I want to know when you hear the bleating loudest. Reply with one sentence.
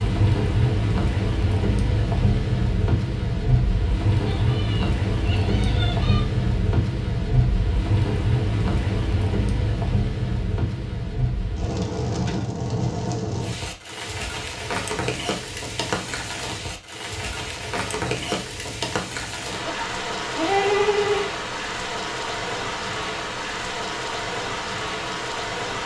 The volume of the bleating peaks at 21 seconds.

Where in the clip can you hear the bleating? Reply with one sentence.
The bleating can be heard from 4.2 to 6.2 s and from 19.6 to 21.3 s.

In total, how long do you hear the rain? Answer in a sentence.
The rain can be heard for 26 seconds in total.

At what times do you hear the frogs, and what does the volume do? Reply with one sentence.
You can't hear the frogs here.